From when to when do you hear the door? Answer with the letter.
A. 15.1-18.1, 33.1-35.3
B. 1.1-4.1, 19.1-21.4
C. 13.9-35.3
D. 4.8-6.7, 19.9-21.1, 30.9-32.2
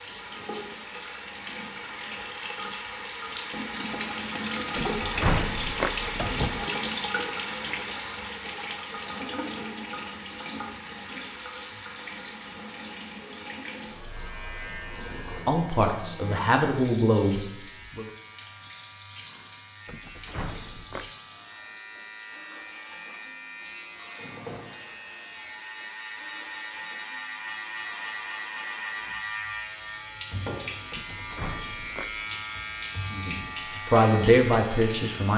D.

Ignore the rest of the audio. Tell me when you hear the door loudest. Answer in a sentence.
The loudest moment of the door is at 5 seconds.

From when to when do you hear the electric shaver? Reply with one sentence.
You can hear the electric shaver from 13.9 to 35.3 s.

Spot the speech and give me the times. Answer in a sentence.
You can hear the speech from 15.1 to 18.1 s and from 33.1 to 35.3 s.